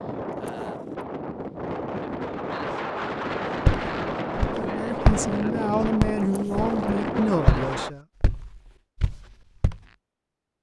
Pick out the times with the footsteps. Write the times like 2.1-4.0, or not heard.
3.6-9.8.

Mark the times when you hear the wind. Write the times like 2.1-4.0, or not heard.
0.0-7.9.